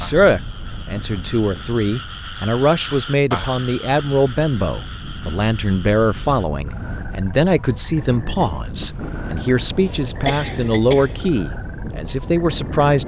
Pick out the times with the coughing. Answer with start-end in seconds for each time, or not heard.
9.8-11.2.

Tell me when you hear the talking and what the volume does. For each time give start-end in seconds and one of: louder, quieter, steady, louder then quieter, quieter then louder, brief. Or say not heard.
0.0-13.0 steady.